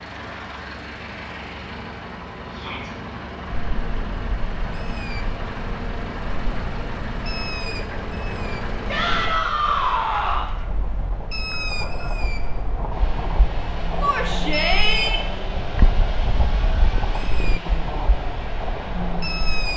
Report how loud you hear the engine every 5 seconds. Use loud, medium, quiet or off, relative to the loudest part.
loud, loud, medium, loud.